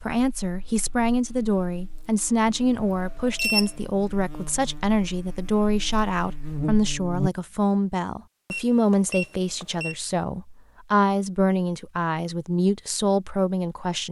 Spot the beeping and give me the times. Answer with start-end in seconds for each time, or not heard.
2.8-3.7, 8.5-9.9.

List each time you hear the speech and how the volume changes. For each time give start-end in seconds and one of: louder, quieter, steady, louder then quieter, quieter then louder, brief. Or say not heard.
0.0-14.0 steady.